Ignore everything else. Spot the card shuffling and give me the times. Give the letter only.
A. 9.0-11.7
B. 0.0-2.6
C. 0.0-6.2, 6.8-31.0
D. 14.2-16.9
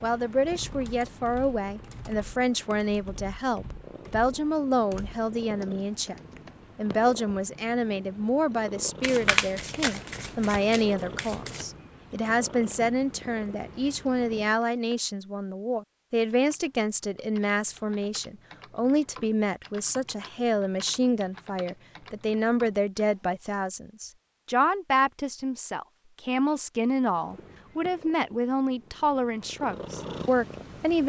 A.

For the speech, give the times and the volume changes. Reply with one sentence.
The speech can be heard from 0.0 to 6.2 s, at a steady volume; and from 6.8 to 31.0 s, at a steady volume.